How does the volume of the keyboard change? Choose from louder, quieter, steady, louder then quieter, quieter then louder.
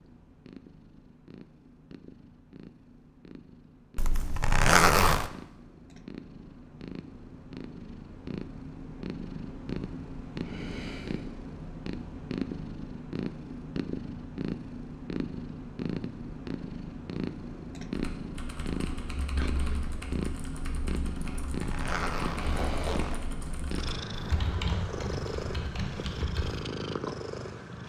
louder.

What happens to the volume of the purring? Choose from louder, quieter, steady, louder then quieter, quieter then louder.
louder.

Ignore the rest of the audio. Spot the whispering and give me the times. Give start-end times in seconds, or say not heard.
19.4-19.9.